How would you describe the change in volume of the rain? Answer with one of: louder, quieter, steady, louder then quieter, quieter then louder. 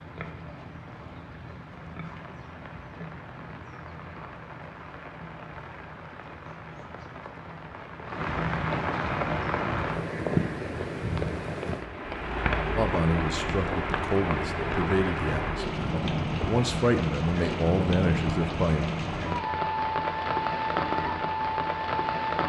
louder.